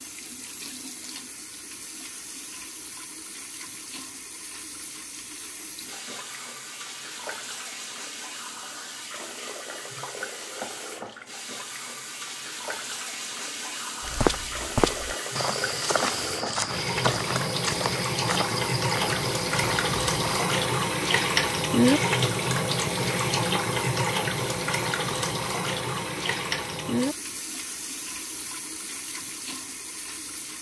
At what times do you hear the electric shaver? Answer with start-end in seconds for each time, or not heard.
not heard.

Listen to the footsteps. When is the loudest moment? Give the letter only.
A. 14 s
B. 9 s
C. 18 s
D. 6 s
A.